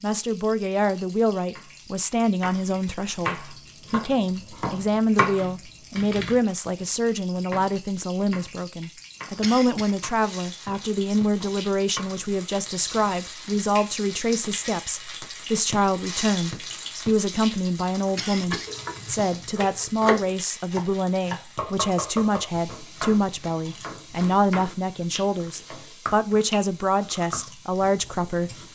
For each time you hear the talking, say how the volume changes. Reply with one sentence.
You can hear the talking from 0.0 to 28.5 s, at a steady volume.